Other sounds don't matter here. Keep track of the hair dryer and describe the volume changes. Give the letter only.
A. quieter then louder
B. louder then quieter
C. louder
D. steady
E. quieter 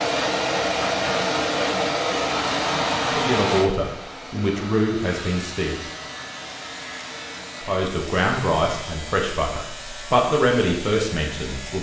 E.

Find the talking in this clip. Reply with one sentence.
You can hear the talking from 3.0 to 5.8 s and from 7.6 to 11.7 s.